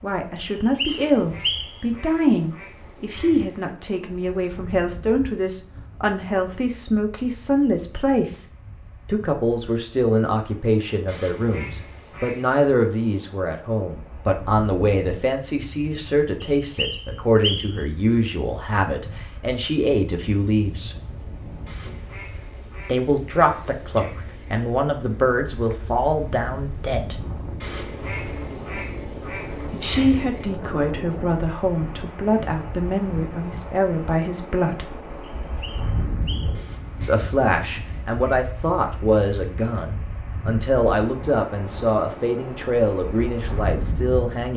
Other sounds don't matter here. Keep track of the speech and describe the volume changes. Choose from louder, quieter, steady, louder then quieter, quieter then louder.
steady.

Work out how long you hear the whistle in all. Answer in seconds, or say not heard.
4 s.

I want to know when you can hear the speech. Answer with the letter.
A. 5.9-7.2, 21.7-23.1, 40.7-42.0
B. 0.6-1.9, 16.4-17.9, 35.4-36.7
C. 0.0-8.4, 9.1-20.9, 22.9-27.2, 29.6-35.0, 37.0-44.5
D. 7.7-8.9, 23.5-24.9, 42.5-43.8
C.